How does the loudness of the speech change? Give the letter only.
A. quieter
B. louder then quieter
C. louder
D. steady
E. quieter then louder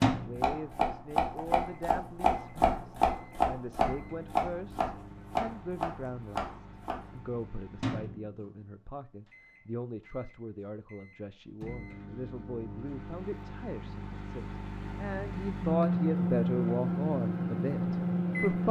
C.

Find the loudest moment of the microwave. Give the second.
16 s.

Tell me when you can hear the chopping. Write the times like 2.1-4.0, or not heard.
0.0-7.2.